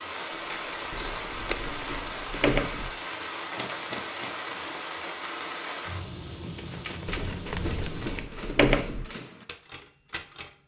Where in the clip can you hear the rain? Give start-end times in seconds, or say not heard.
0.0-8.2.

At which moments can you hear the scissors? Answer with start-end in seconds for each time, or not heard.
0.3-1.8, 6.5-8.4.